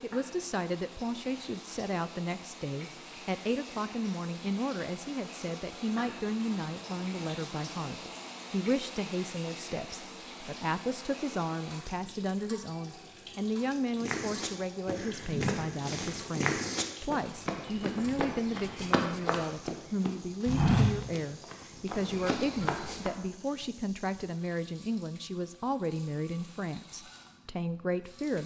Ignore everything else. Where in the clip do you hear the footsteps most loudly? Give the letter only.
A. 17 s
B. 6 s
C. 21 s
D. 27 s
C.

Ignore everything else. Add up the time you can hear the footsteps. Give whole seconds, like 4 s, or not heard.
9 s.